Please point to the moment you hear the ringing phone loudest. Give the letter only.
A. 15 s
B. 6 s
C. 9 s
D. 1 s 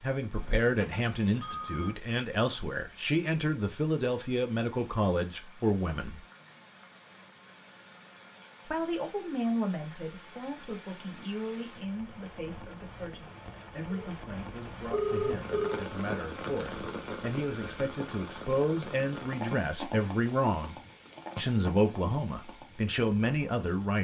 A.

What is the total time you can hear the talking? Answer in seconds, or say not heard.
21 s.